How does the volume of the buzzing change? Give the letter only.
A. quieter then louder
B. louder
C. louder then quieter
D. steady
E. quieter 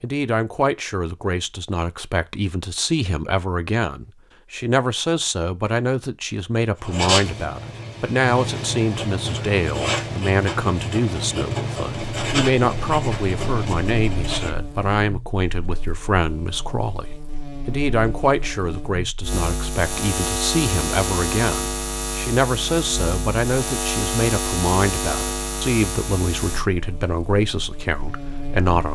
C.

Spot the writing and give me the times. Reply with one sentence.
The writing can be heard from 6.8 to 14.6 s.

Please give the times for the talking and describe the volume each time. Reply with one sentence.
The talking can be heard from 0.0 to 28.9 s, at a steady volume.